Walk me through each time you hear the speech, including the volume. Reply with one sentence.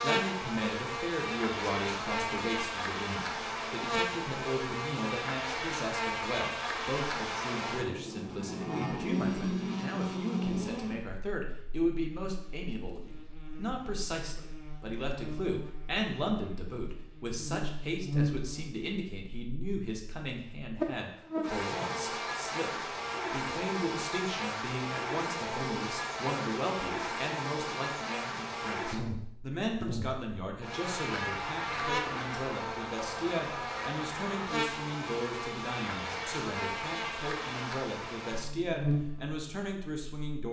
The speech can be heard from 0.0 to 40.4 s, at a steady volume.